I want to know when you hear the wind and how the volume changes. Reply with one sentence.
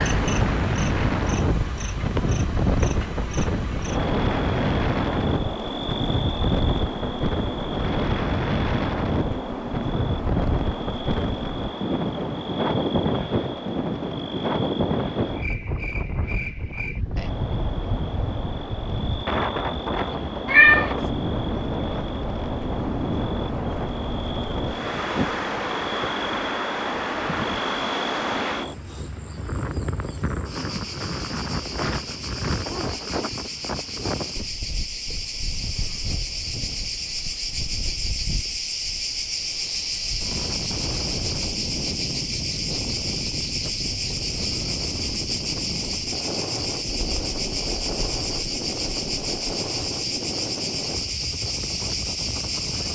You can hear the wind from 0.0 to 52.8 s, getting quieter.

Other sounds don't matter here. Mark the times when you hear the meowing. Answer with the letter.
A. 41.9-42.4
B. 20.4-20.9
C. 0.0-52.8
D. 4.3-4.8
B.